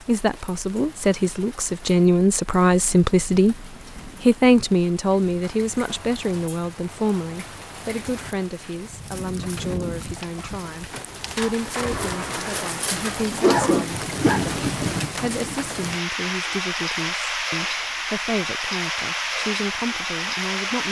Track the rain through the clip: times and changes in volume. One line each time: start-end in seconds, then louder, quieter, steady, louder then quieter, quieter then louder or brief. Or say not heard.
0.0-20.8 louder.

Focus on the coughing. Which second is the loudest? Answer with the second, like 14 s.
14 s.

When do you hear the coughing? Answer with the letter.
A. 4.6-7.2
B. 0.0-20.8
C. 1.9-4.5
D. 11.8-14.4
D.